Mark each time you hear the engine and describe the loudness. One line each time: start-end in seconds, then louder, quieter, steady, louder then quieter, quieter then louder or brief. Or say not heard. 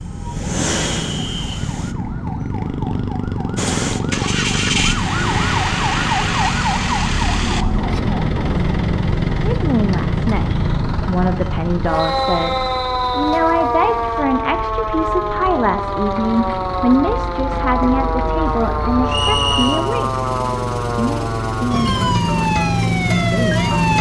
0.0-1.9 brief
3.5-23.9 quieter then louder.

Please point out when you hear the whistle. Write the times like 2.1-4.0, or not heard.
0.9-1.6, 11.9-13.4, 19.1-19.9.